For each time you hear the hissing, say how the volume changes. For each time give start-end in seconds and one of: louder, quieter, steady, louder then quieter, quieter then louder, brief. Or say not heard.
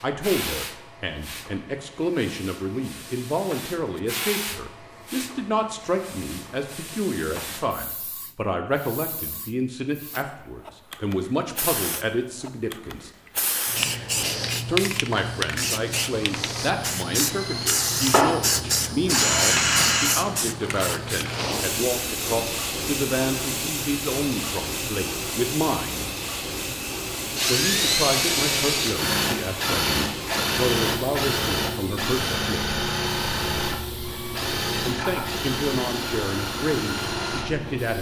0.0-37.9 louder then quieter.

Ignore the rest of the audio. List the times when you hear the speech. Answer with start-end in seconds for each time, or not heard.
0.0-13.1, 14.7-26.1, 27.4-32.7, 34.8-37.9.